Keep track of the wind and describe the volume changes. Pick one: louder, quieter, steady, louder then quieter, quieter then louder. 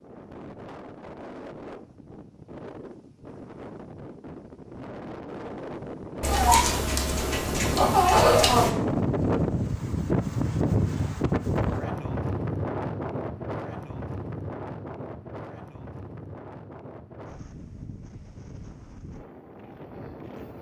louder then quieter.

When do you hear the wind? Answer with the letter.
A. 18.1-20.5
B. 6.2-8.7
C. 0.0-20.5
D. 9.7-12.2
C.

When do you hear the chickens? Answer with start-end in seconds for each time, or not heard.
6.2-8.7.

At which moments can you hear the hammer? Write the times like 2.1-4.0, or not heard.
not heard.